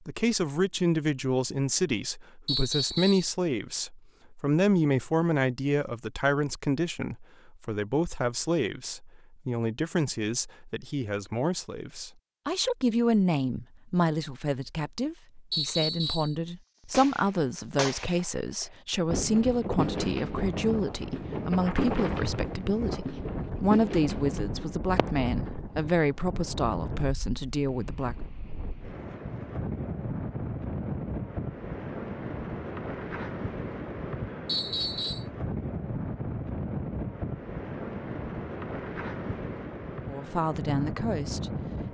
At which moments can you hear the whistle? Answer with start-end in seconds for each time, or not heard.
2.5-3.3, 15.5-16.4, 34.5-35.2.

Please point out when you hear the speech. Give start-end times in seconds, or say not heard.
0.1-28.1, 40.0-41.5.